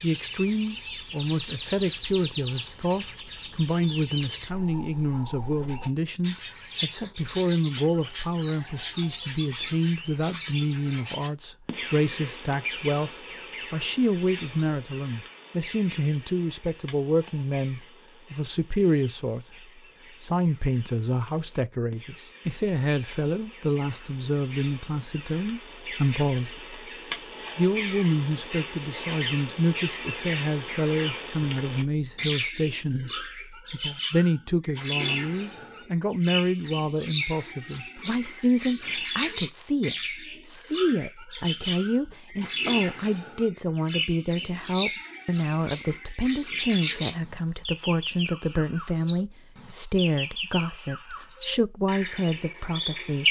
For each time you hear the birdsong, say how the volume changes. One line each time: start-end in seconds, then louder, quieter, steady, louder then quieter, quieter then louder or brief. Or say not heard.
0.0-53.2 quieter then louder.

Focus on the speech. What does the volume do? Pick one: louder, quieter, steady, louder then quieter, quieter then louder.
steady.